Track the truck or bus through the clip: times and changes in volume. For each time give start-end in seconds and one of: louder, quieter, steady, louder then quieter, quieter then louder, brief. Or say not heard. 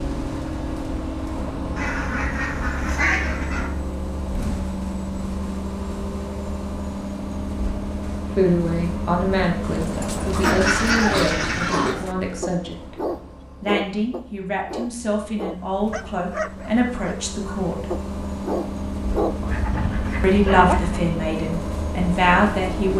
0.0-22.9 quieter then louder.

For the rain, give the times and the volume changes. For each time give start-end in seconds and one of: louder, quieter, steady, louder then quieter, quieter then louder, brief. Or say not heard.
not heard.